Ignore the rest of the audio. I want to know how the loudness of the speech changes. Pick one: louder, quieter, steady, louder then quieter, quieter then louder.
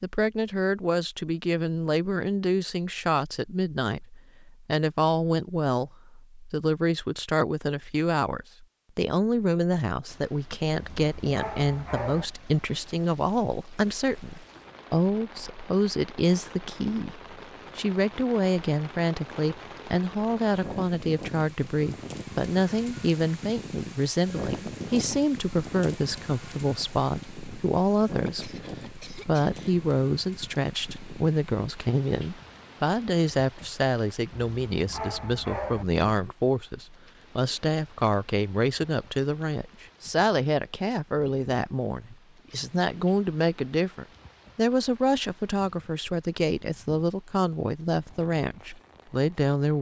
steady.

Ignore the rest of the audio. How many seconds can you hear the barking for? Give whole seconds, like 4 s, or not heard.
3 s.